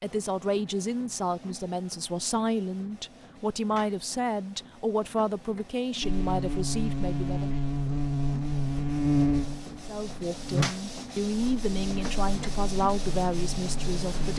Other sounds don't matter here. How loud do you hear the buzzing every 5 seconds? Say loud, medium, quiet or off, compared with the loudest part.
off, loud, medium.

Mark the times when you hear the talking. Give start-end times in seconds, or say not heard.
0.0-7.5, 9.8-14.3.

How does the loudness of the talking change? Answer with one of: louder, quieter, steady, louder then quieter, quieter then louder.
steady.